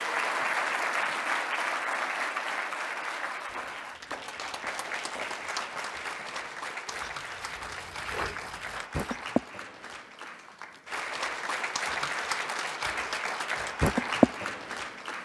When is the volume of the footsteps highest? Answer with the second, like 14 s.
8 s.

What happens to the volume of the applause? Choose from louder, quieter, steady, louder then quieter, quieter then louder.
quieter then louder.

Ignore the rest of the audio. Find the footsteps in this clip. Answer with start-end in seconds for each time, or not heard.
3.5-9.3.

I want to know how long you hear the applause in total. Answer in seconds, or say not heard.
15 s.